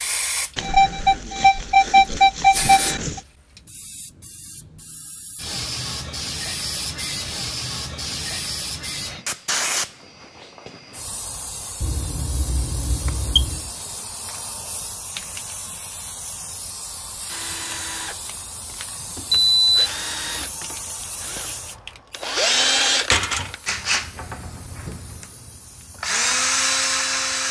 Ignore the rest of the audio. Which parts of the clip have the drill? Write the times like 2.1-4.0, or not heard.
17.2-27.4.